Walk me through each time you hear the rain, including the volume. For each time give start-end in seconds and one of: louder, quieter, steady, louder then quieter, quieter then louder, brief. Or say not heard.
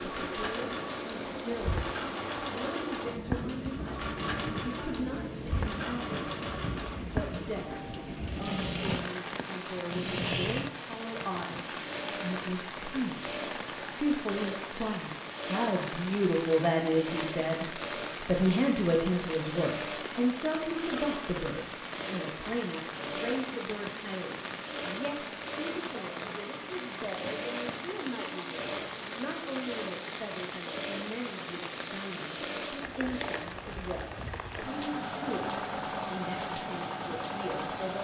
0.0-37.9 steady.